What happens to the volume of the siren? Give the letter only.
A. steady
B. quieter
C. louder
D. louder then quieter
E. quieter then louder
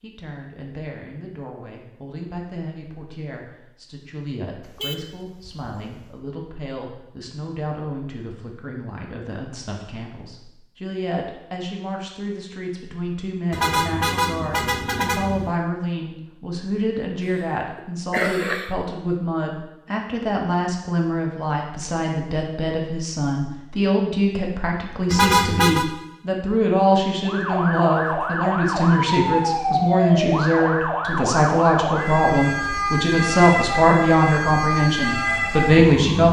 A.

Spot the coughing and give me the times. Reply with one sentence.
The coughing can be heard from 17.2 to 18.8 s.